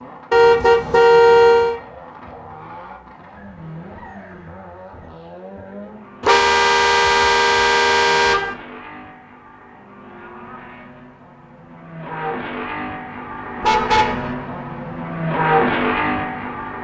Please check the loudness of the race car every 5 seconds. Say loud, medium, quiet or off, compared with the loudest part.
quiet, quiet, medium, loud.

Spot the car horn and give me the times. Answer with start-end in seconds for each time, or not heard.
0.3-1.8, 6.2-8.6, 13.6-14.3.